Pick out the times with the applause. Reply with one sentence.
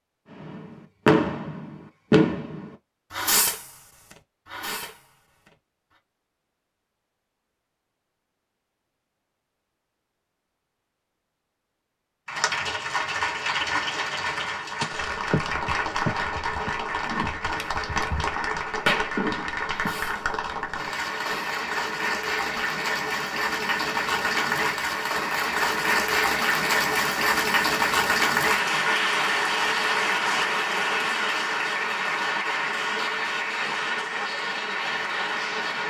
You can hear the applause from 12.2 to 35.8 s.